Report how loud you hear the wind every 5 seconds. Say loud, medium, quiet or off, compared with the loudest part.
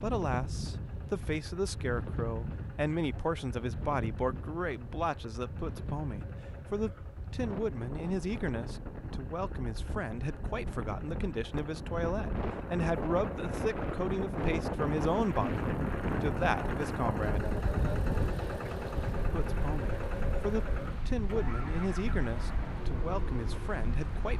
medium, medium, loud, loud, medium.